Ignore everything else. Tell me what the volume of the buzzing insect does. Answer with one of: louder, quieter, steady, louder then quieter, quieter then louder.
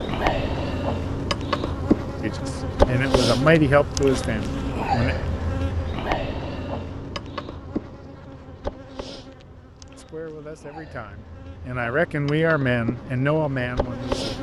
quieter.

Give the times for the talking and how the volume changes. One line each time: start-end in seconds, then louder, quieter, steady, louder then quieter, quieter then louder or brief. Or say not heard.
2.2-5.2 brief
9.9-14.3 louder.